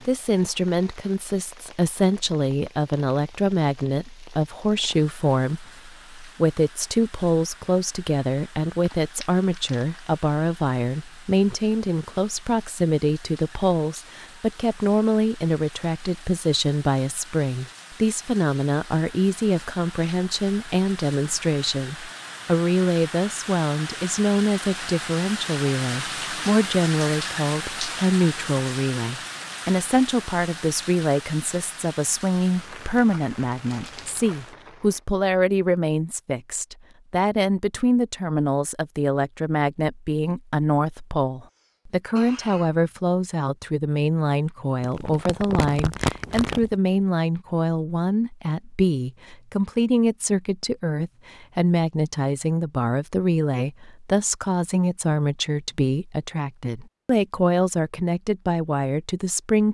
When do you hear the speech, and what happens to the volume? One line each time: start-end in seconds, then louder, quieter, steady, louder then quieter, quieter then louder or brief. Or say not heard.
0.1-59.6 steady.